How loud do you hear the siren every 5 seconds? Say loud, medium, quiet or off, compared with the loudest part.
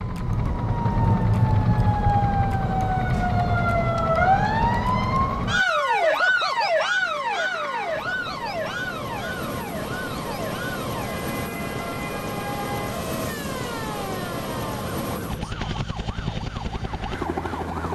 loud, loud, quiet, quiet.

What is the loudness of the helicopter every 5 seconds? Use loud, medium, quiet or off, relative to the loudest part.
quiet, medium, loud, loud.